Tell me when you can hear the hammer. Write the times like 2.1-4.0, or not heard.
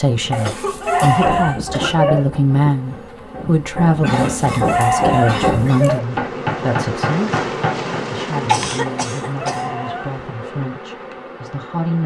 0.9-8.1.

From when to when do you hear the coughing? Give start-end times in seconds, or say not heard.
0.4-2.1, 4.0-5.8, 8.4-9.7.